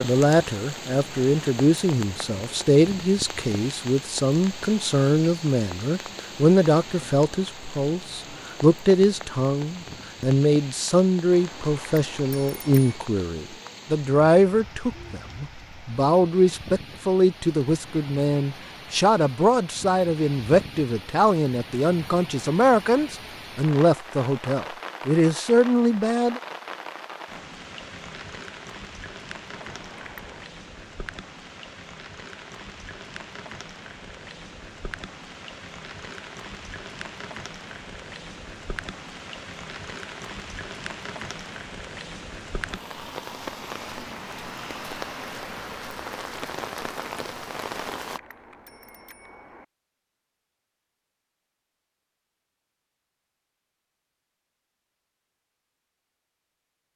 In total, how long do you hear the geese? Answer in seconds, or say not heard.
not heard.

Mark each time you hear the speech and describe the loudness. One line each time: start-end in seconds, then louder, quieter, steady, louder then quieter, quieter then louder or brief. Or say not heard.
0.0-26.4 steady.